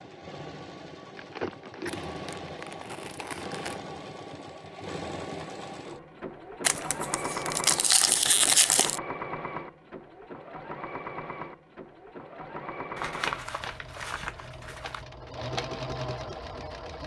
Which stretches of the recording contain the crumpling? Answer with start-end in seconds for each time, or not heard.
1.1-3.8, 6.6-9.0, 12.9-15.0.